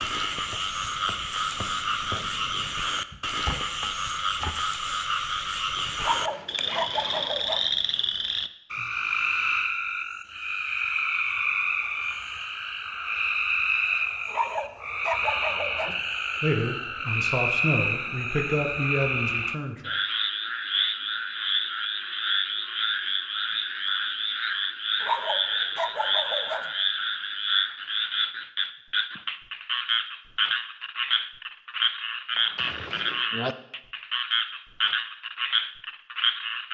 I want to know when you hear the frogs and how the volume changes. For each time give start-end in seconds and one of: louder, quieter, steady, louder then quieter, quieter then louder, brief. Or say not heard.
0.0-36.6 steady.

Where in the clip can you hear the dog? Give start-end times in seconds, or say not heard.
6.0-7.7, 14.2-15.9, 25.0-26.7.